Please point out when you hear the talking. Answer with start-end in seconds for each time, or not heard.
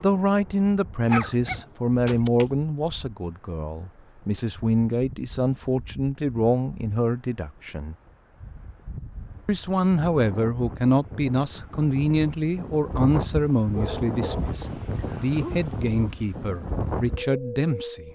0.0-8.0, 9.4-18.0.